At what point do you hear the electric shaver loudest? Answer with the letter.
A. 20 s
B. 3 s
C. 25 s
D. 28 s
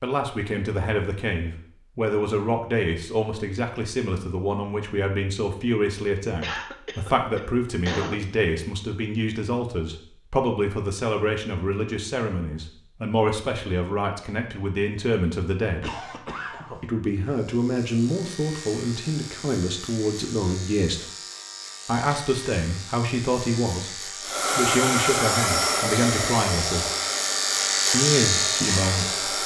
D.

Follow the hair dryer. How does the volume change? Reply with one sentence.
The loudness of the hair dryer goes down.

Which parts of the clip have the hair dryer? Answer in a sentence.
The hair dryer can be heard from 24.2 to 29.4 s.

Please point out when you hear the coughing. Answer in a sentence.
The coughing can be heard from 6.4 to 8.2 s and from 15.8 to 16.9 s.